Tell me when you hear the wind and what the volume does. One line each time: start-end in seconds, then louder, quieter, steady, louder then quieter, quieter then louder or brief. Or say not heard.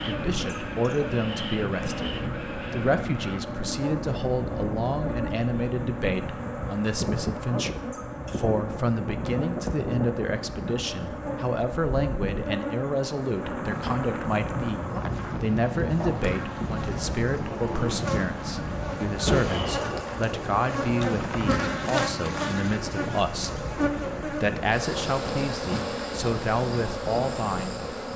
0.0-28.1 steady.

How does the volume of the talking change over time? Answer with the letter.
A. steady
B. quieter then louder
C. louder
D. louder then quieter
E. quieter
A.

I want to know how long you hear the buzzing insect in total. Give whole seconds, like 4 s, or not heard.
28 s.